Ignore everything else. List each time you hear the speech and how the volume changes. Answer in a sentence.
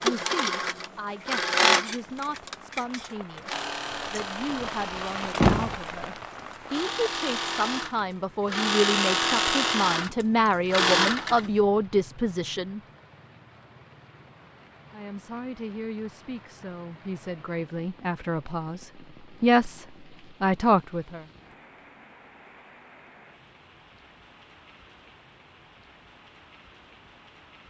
The speech can be heard from 0.0 to 12.8 s, getting louder; and from 14.9 to 21.2 s, getting louder.